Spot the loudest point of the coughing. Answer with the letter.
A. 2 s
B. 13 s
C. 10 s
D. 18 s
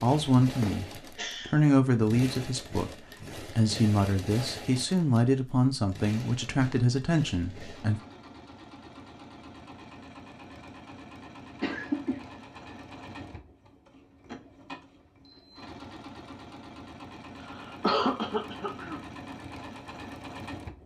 D.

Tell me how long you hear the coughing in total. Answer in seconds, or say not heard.
3 s.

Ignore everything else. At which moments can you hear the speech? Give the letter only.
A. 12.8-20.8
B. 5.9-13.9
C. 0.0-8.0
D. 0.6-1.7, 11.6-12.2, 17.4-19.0
C.